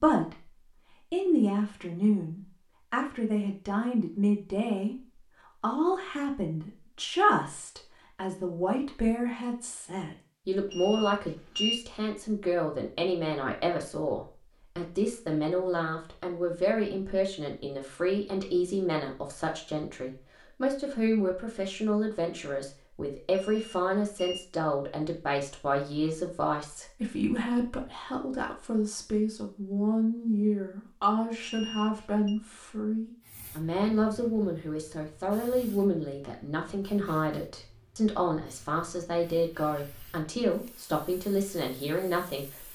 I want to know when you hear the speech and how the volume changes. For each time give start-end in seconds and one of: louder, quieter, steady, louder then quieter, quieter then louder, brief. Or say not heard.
0.0-0.5 brief
1.1-42.6 steady.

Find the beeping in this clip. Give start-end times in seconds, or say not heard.
10.7-11.8, 23.3-24.4, 31.4-32.4.